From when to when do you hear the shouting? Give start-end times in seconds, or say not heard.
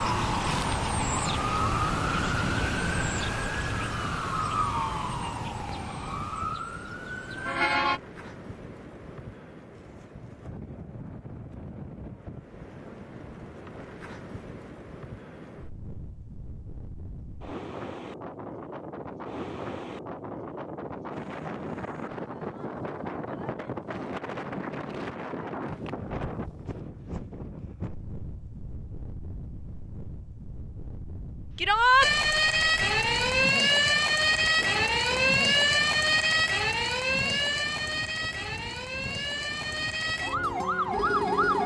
31.6-32.1.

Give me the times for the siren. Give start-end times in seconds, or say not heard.
0.0-8.0, 32.0-41.6.